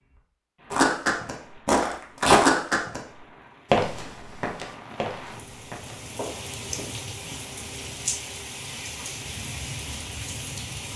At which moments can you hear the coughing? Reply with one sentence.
The coughing can't be heard in this clip.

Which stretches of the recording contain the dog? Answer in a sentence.
You can't hear the dog here.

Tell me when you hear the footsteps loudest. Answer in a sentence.
The loudest moment of the footsteps is at 2 seconds.